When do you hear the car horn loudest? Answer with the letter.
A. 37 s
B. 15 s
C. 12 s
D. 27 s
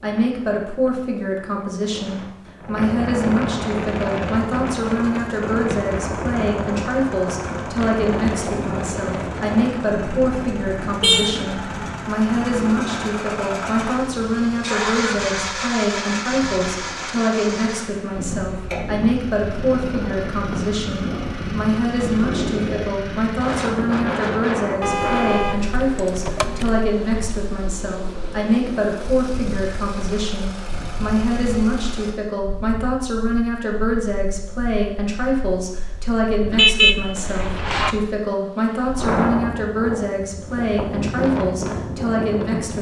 A.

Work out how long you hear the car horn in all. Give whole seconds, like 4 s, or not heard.
4 s.